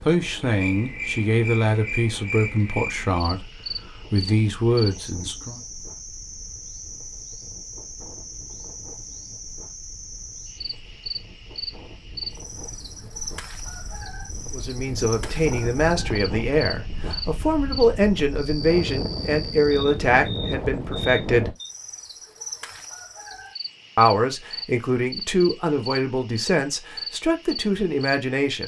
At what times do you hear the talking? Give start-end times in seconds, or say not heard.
0.0-5.6, 14.5-21.6, 23.9-28.6.